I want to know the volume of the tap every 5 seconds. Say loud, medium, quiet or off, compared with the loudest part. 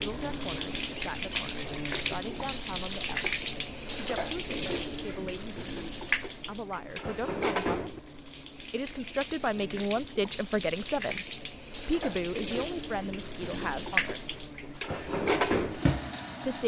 loud, medium, medium, loud.